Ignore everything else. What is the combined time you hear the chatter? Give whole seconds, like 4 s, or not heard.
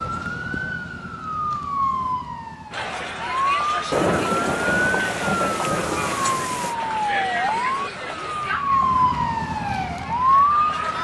8 s.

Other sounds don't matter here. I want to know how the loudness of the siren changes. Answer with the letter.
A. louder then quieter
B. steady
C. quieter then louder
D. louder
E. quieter
D.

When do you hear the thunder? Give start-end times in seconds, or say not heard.
3.9-6.8.